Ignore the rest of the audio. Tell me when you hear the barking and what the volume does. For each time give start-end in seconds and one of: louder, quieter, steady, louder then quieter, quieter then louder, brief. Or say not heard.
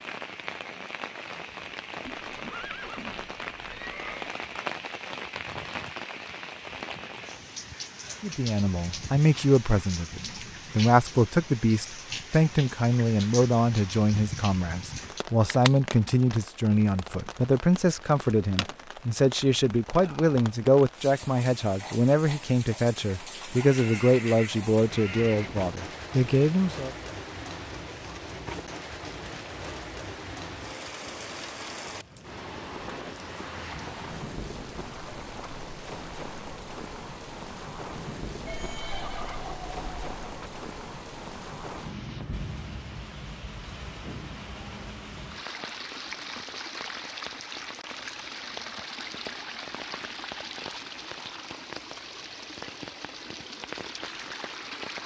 not heard.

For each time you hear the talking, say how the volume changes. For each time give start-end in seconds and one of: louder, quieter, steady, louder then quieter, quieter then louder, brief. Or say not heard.
8.2-26.9 steady.